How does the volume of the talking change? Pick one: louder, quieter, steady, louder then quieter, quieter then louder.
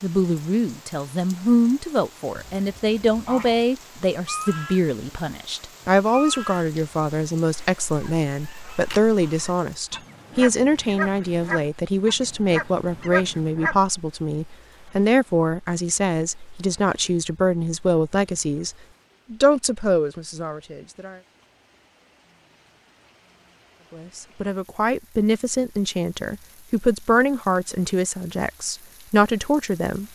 steady.